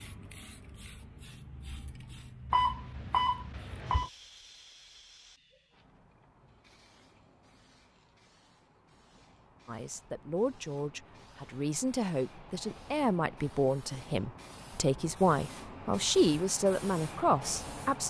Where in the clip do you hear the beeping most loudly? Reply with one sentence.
The loudest moment of the beeping is at 3 seconds.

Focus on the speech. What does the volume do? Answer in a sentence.
The loudness of the speech goes up.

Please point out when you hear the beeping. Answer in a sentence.
You can hear the beeping from 2.5 to 4.1 s.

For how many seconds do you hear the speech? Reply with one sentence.
The speech can be heard for 8 seconds in total.